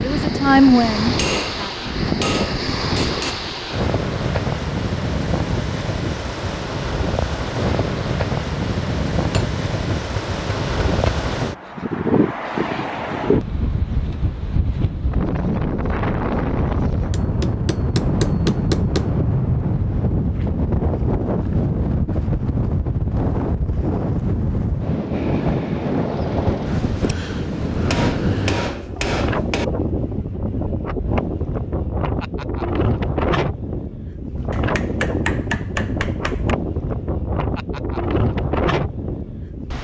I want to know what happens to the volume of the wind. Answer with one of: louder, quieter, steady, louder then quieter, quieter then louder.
steady.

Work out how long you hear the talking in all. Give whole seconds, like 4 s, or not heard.
2 s.